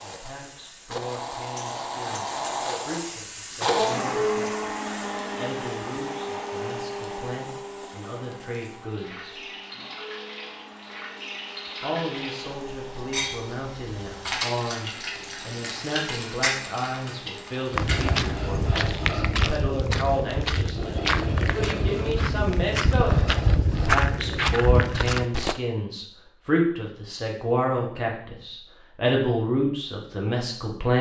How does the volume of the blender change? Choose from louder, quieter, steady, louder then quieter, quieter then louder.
quieter.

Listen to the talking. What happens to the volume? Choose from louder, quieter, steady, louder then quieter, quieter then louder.
louder.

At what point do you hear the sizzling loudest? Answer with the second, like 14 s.
16 s.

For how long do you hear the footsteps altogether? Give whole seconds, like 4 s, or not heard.
8 s.